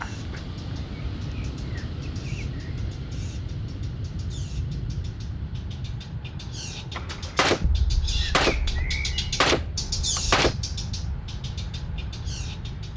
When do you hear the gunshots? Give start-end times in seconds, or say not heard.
7.0-10.6.